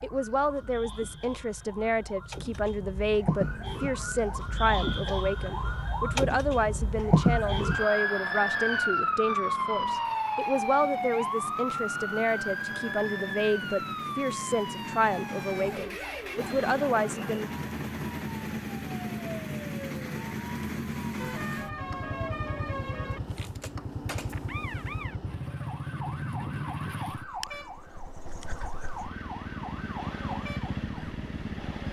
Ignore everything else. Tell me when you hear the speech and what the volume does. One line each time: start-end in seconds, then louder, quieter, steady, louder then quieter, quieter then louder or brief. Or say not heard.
0.0-17.5 steady.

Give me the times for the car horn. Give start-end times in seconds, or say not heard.
21.1-23.2.